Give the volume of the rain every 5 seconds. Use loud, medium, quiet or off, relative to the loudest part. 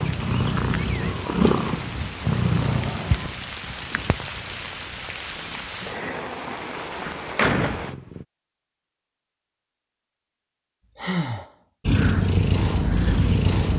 loud, loud, off.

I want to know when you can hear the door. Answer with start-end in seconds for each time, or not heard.
6.9-7.9.